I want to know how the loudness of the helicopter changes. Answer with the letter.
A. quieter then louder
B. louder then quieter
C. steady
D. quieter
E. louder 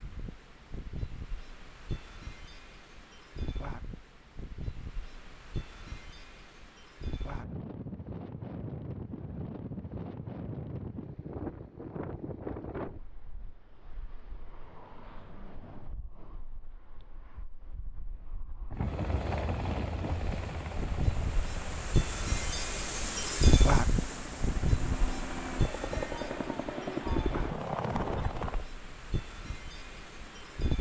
A.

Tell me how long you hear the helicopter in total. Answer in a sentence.
The helicopter can be heard for 10 seconds in total.